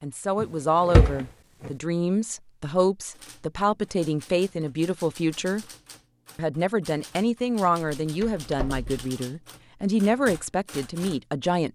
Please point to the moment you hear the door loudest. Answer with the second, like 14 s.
1 s.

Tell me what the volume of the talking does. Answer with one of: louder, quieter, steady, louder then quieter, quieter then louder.
steady.